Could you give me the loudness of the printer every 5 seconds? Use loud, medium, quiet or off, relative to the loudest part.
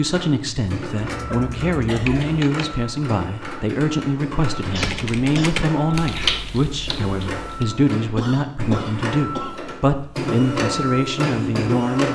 medium, medium, loud.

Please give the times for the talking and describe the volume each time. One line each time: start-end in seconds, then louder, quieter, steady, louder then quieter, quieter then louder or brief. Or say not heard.
0.0-12.0 steady.